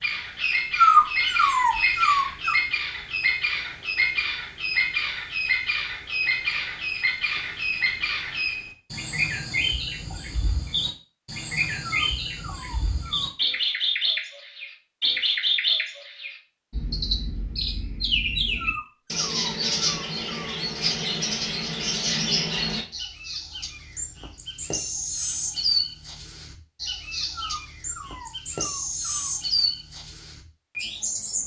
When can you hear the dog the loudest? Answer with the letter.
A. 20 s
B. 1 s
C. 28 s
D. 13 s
B.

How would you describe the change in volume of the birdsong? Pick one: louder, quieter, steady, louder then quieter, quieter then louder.
steady.